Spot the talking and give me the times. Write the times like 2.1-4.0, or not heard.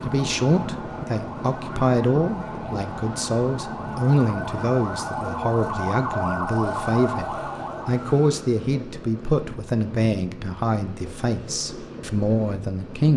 0.0-13.1.